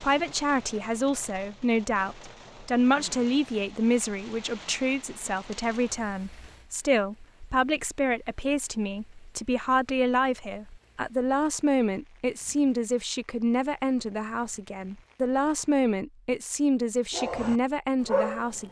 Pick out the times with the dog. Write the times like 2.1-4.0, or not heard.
17.1-18.6.